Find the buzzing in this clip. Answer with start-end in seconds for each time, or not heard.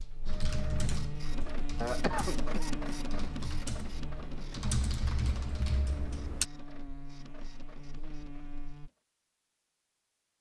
0.0-8.9.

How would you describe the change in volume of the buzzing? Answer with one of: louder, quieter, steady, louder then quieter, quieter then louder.
quieter.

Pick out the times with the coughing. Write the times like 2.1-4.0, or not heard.
1.8-2.8.